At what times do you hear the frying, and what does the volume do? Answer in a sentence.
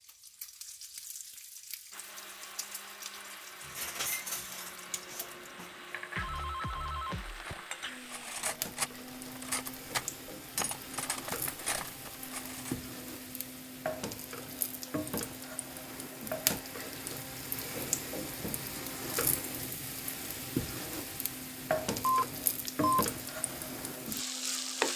You can hear the frying from 0.0 to 24.9 s, getting louder.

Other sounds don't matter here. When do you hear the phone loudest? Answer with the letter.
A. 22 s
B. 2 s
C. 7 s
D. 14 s
A.